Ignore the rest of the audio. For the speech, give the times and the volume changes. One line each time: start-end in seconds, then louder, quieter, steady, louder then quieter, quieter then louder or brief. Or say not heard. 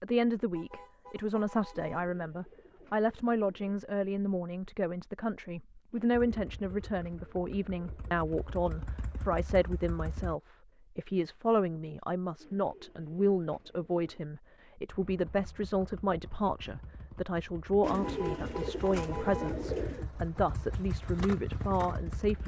0.0-22.4 steady.